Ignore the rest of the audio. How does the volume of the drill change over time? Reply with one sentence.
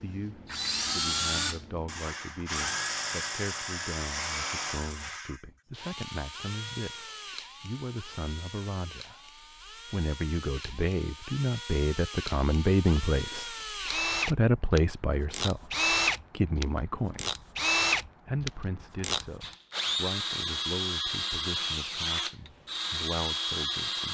The loudness of the drill goes down, then up.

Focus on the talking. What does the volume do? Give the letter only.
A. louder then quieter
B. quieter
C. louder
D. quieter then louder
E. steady
A.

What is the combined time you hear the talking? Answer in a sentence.
You can hear the talking for 22 seconds altogether.